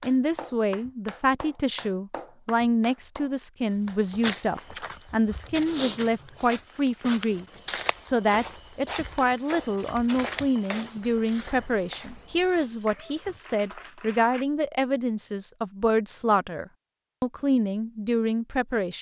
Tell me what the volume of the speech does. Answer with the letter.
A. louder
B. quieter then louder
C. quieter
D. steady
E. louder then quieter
D.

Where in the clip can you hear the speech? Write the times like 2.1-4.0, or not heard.
0.0-18.9.